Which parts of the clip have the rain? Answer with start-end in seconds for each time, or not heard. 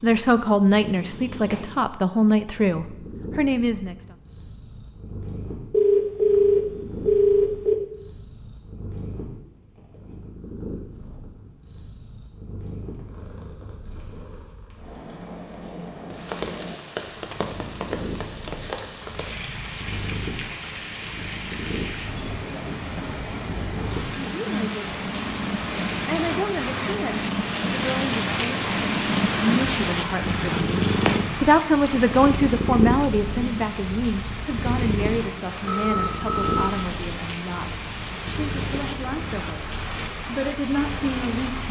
16.1-41.6.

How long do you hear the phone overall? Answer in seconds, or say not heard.
3 s.